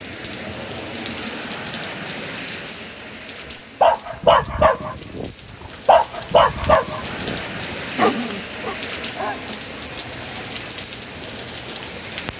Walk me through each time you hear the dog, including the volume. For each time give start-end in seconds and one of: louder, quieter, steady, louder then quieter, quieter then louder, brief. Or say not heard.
3.8-10.6 quieter.